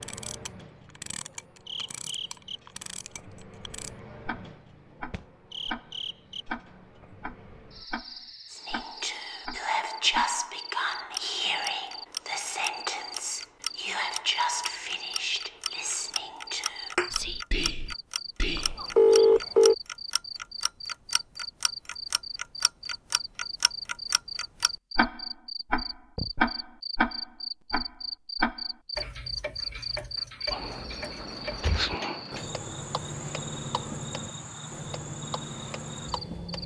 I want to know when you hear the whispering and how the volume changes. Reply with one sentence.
The whispering can be heard from 8.5 to 18.9 s, getting quieter.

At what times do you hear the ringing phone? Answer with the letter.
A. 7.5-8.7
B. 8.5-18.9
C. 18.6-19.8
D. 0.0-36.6
C.